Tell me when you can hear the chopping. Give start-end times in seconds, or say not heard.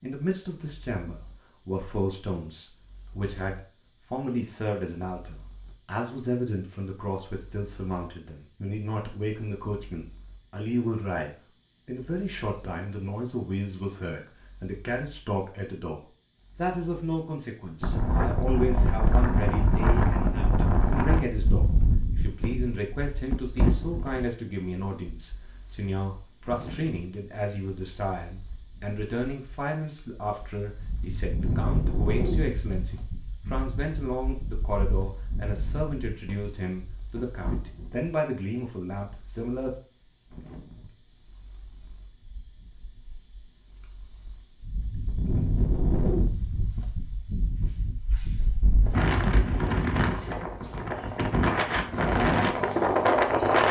not heard.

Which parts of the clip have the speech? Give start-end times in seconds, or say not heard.
0.0-39.7.